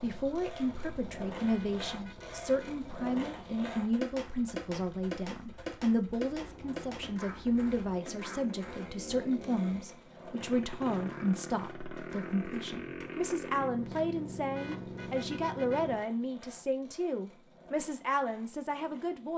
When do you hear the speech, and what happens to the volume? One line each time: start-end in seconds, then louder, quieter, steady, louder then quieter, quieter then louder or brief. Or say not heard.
0.0-19.3 steady.